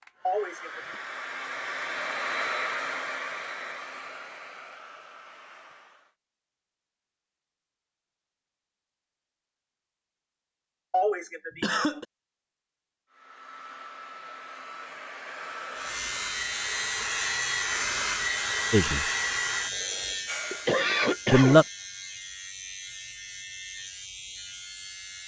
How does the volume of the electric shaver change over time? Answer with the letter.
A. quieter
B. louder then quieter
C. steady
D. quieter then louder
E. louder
A.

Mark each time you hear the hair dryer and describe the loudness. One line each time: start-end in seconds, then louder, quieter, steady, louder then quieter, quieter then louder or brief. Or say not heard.
0.0-6.2 louder then quieter
13.1-20.8 louder.